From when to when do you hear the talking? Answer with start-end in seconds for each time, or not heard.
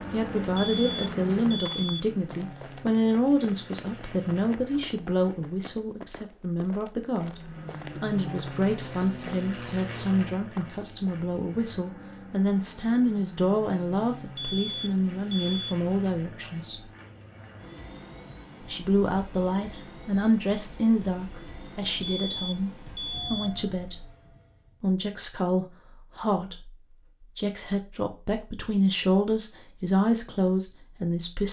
0.1-16.8, 18.6-24.1, 24.8-31.4.